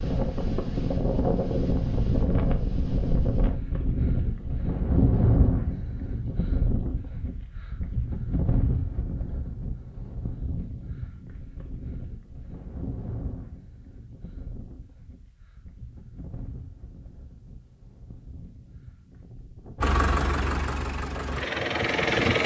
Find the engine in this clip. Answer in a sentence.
You can hear the engine from 19.8 to 22.4 s.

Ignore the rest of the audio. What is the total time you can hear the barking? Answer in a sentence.
You can't hear the barking here.